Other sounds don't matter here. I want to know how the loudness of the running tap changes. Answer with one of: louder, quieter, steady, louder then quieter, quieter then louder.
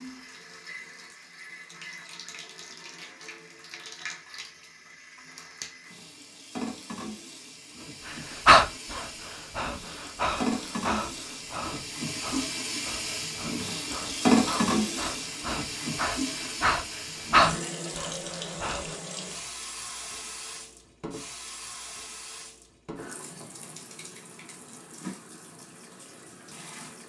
louder then quieter.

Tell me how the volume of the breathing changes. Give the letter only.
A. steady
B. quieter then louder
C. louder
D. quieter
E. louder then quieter
B.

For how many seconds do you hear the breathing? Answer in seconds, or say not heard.
11 s.